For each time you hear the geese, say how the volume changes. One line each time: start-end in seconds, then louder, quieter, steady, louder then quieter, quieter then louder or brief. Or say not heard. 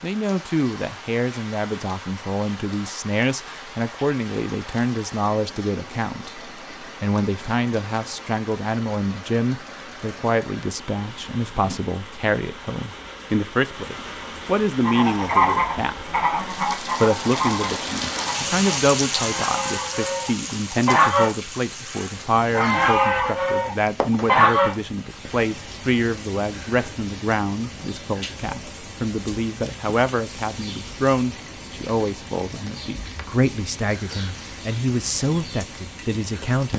14.8-25.4 quieter then louder.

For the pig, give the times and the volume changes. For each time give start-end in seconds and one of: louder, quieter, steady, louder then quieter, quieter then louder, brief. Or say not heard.
not heard.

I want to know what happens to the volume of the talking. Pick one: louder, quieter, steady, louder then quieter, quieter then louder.
steady.